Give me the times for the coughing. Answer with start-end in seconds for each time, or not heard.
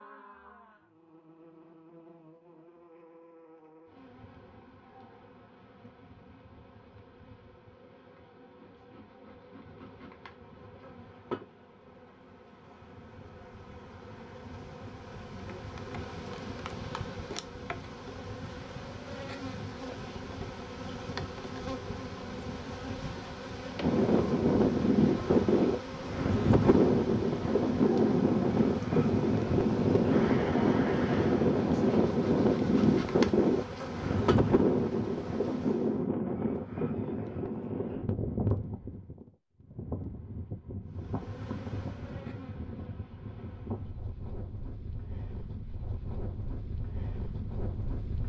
not heard.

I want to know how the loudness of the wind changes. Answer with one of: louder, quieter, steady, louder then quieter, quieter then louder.
quieter.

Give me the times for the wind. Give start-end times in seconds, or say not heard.
23.8-48.2.